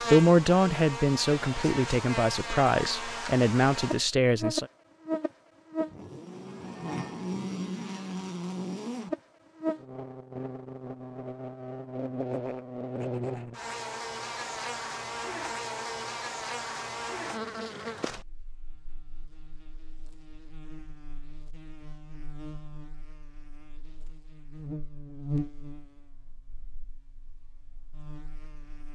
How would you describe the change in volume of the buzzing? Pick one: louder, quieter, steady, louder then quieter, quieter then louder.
quieter.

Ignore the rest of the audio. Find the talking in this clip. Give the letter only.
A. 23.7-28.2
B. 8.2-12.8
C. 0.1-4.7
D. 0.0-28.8
C.